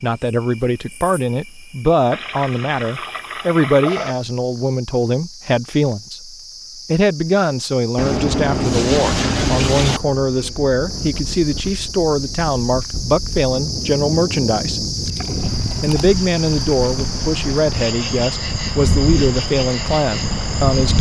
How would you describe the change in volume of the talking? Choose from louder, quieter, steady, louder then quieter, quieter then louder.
steady.